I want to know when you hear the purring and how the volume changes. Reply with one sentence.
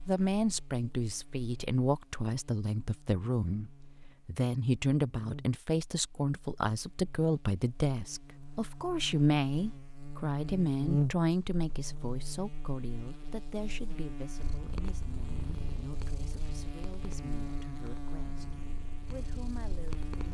The purring can be heard from 14.3 to 20.2 s, getting quieter.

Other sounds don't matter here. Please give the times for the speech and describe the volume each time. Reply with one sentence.
You can hear the speech from 0.1 to 20.2 s, getting quieter.